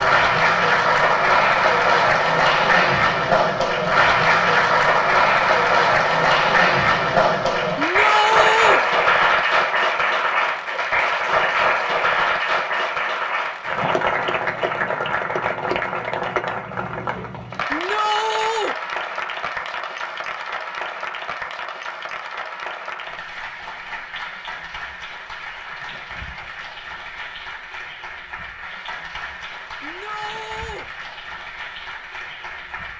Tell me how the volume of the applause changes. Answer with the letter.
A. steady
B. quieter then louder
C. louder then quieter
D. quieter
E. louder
D.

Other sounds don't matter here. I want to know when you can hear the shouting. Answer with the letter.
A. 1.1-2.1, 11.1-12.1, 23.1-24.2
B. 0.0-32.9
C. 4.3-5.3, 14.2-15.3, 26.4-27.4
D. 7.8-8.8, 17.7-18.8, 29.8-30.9
D.